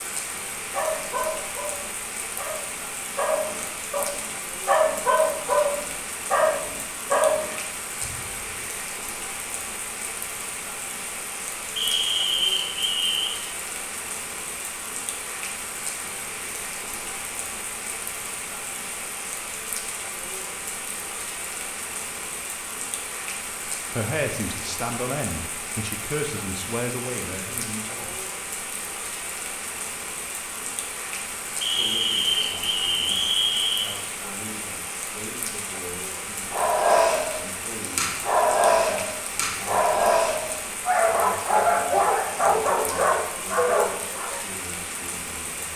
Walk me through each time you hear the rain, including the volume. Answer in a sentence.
The rain can be heard from 0.0 to 45.7 s, at a steady volume.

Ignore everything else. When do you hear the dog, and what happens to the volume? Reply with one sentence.
The dog can be heard from 0.7 to 8.7 s, getting louder; and from 36.5 to 44.4 s, at a steady volume.